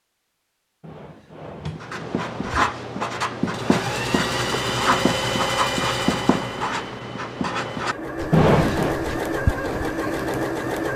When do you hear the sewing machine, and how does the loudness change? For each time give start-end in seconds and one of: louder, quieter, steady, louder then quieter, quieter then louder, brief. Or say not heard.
3.4-10.9 quieter then louder.